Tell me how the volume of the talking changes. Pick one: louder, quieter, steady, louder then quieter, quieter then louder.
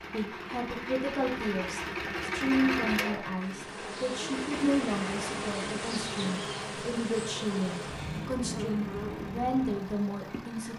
steady.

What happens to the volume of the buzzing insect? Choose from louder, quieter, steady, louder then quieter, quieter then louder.
steady.